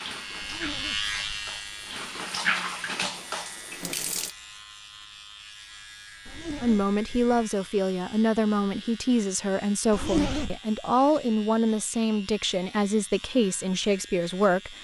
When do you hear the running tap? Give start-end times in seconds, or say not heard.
0.0-4.3.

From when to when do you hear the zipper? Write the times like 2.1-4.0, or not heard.
0.4-1.1, 6.2-7.5, 9.9-10.6.